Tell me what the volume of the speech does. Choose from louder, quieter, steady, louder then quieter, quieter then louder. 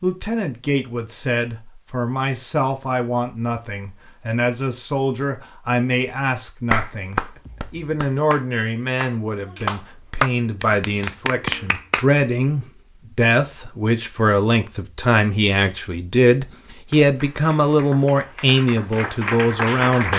louder.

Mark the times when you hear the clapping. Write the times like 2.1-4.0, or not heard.
6.7-12.1, 16.9-20.1.